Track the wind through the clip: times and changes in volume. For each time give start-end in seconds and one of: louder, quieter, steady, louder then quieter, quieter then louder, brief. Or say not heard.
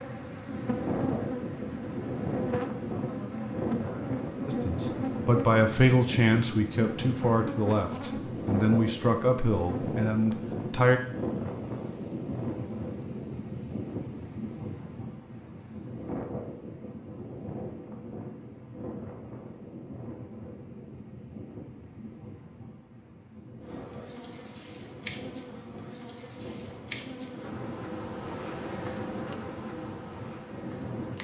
0.0-31.1 quieter.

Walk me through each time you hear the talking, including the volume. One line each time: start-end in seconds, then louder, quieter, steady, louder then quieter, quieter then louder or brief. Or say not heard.
4.5-11.0 quieter.